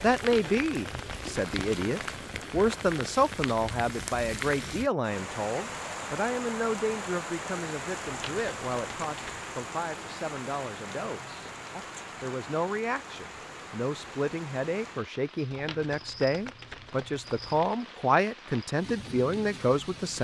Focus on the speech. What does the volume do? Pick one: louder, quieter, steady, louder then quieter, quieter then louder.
quieter then louder.